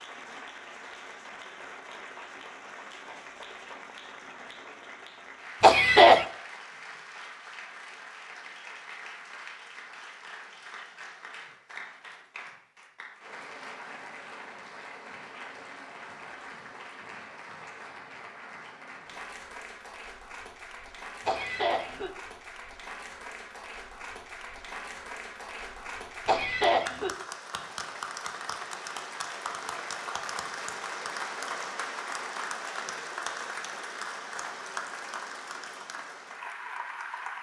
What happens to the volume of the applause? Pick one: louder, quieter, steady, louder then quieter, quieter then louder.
louder.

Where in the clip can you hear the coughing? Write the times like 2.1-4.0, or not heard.
5.6-6.2, 21.2-22.1, 26.2-27.1.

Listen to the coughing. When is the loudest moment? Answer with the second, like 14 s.
6 s.